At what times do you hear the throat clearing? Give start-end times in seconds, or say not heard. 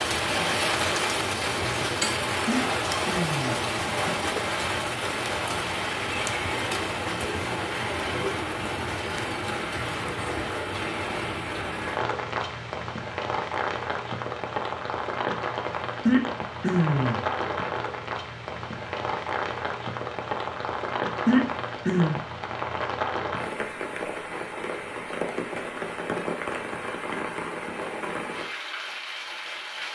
2.5-4.2, 16.1-17.2, 21.2-22.2.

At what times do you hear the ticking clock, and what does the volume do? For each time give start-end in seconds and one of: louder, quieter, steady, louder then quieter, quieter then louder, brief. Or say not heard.
not heard.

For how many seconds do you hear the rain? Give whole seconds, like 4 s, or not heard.
30 s.